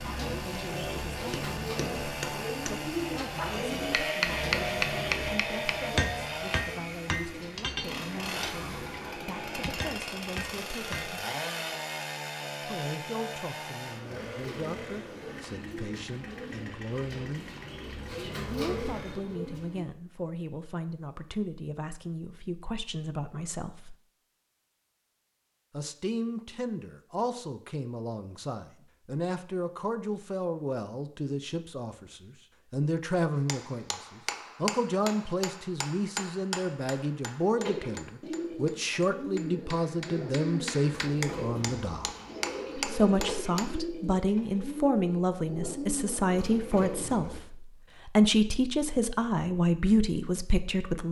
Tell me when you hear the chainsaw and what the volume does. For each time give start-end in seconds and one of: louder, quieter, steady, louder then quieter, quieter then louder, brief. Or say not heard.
0.0-19.2 quieter.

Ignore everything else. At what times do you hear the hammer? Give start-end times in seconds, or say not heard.
1.1-11.2, 33.5-43.8.